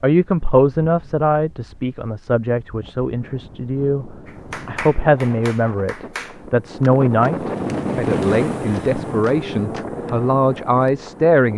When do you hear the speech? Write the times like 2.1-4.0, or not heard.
0.0-11.5.